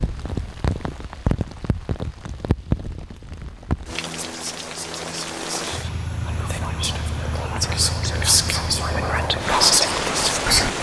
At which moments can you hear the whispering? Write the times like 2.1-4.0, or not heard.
4.2-10.7.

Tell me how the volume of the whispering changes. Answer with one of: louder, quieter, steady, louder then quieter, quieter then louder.
louder.